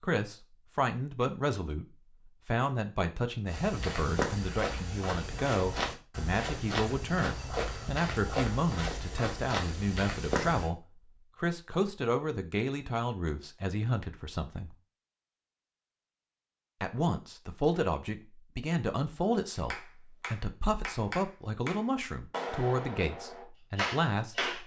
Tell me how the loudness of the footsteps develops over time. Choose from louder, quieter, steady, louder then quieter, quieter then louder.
steady.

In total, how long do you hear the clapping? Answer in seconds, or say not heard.
5 s.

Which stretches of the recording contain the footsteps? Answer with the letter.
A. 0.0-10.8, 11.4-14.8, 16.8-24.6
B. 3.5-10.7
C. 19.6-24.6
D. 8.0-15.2
B.